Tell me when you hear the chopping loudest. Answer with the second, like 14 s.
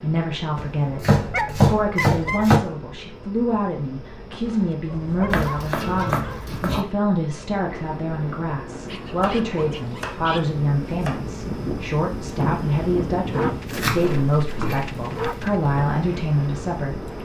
2 s.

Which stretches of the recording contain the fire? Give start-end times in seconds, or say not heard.
not heard.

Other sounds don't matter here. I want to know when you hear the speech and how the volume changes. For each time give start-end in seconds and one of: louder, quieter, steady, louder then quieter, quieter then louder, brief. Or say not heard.
0.0-17.1 steady.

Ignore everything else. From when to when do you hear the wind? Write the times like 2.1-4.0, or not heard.
7.5-17.2.